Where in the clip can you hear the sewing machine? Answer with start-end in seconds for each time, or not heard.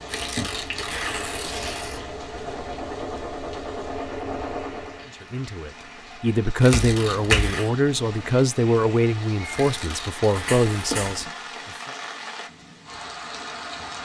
0.0-5.1.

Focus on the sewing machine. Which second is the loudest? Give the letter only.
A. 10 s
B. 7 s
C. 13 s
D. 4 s
D.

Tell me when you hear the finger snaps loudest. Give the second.
7 s.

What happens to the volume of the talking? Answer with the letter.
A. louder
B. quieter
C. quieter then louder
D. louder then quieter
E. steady
E.